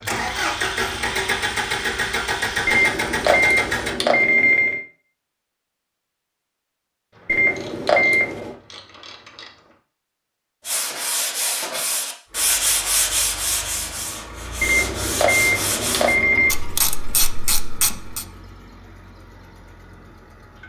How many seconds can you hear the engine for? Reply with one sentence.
The engine can be heard for 12 seconds in total.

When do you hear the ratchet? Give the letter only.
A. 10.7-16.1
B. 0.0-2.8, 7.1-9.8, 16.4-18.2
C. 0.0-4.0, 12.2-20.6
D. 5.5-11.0
B.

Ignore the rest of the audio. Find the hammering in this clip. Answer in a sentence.
The hammering can't be heard in this clip.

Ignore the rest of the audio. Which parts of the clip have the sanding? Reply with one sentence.
The sanding can be heard from 10.7 to 16.1 s.